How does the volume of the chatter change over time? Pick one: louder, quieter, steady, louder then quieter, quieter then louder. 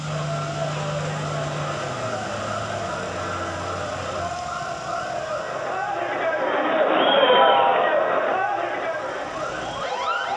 louder then quieter.